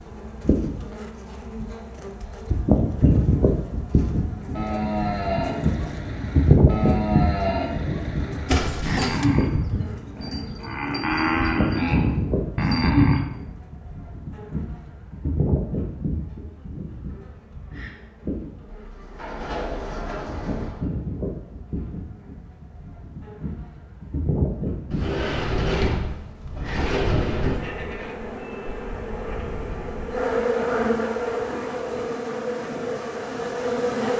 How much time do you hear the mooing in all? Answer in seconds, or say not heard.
9 s.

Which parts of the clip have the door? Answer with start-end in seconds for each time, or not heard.
8.4-9.2, 18.6-20.9, 24.9-27.6.